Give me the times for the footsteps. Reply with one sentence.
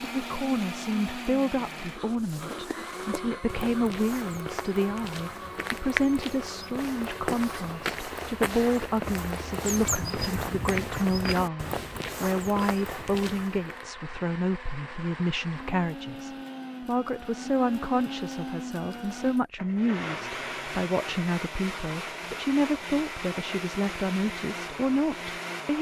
You can hear the footsteps from 1.9 to 13.8 s.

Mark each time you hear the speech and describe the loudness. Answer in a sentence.
The speech can be heard from 0.1 to 25.7 s, at a steady volume.